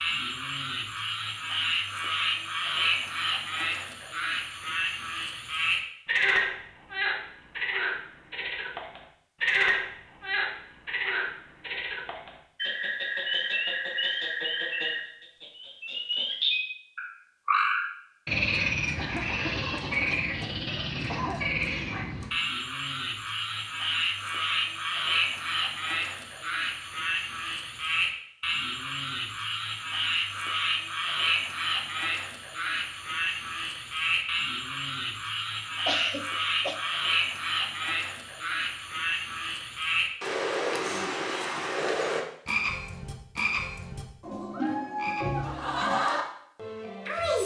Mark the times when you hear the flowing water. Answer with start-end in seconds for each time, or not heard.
not heard.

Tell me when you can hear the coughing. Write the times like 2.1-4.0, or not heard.
18.9-21.5, 35.9-36.8.